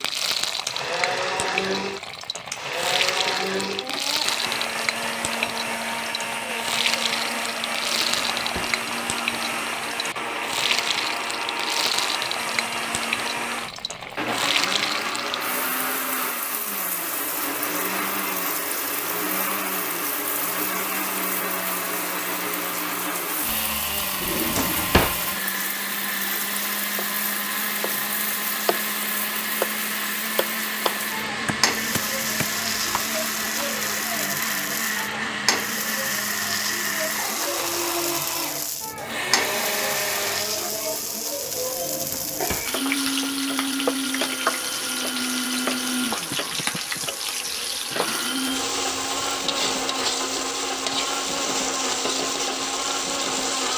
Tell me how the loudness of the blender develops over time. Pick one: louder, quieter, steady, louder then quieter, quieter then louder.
steady.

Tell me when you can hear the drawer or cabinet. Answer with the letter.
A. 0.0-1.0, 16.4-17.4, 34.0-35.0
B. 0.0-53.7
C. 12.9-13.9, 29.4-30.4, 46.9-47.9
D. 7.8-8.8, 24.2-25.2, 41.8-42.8
D.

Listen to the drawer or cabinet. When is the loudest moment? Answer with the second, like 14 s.
25 s.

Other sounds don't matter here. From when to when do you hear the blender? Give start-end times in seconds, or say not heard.
0.0-53.7.